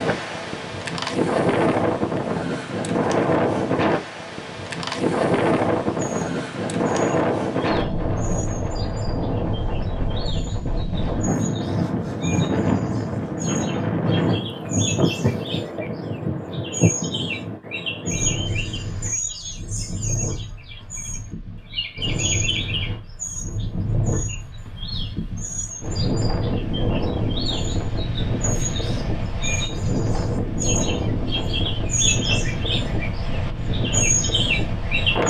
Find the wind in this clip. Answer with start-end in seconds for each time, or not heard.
0.0-35.2.